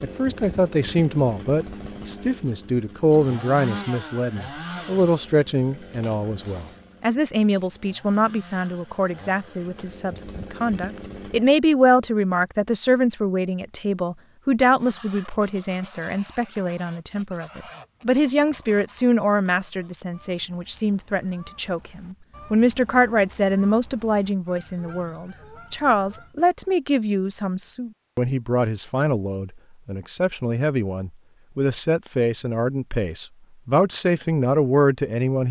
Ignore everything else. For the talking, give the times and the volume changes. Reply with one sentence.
You can hear the talking from 0.0 to 35.4 s, at a steady volume.